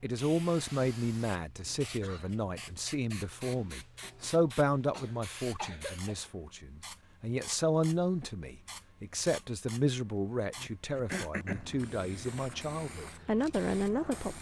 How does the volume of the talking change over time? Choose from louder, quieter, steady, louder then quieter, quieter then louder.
steady.